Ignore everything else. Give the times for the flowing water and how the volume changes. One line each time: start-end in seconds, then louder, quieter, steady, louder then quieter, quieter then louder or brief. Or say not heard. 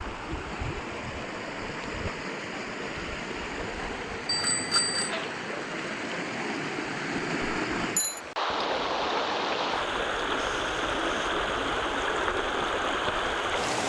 0.0-13.8 louder.